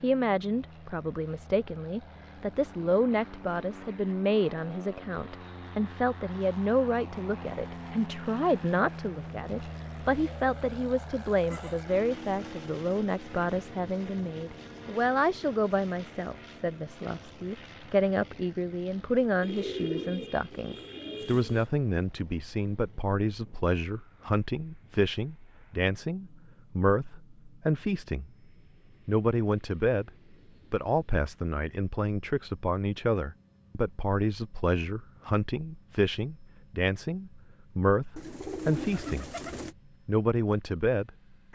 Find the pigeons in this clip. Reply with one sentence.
You can hear the pigeons from 10.1 to 11.8 s, from 19.4 to 21.6 s and from 38.1 to 39.8 s.